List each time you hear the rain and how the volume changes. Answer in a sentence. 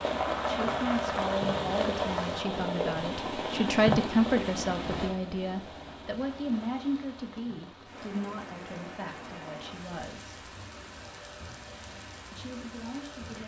The rain can be heard from 0.0 to 13.4 s, getting quieter.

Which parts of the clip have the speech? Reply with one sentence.
The speech can be heard from 0.1 to 10.4 s and from 12.3 to 13.4 s.